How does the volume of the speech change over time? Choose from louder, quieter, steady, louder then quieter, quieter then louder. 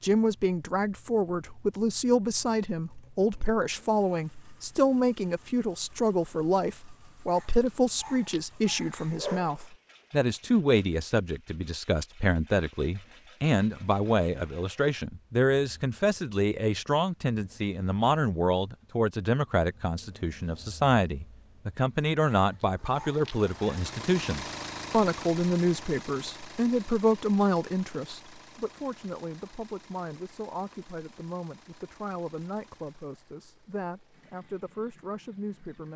quieter.